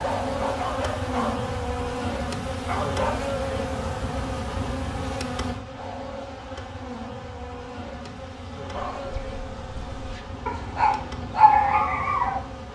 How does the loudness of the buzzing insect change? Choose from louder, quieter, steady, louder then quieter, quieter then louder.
quieter.